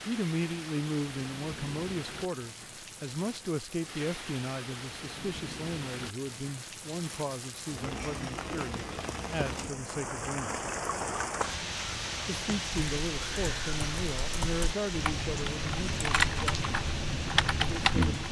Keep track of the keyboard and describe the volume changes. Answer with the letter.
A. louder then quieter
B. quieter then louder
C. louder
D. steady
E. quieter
C.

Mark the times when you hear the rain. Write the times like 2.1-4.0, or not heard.
0.0-18.2.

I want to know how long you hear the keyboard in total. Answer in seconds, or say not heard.
6 s.